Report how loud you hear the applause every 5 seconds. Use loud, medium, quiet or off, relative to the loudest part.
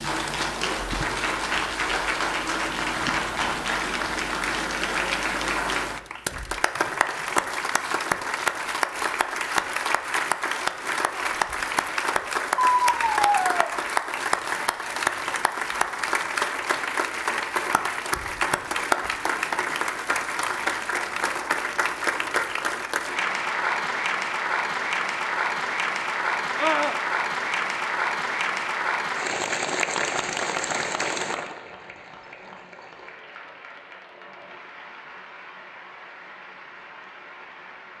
loud, loud, loud, loud, loud, loud, medium, quiet.